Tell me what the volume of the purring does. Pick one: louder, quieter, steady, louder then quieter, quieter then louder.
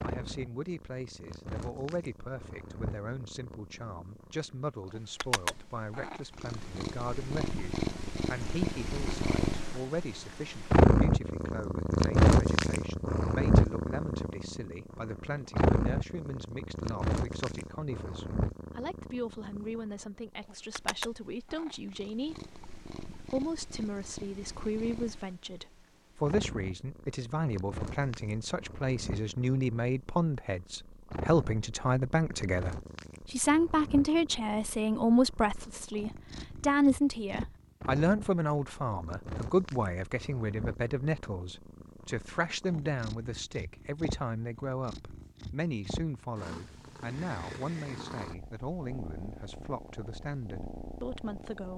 louder then quieter.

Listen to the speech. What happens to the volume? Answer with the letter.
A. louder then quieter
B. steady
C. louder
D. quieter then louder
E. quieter
A.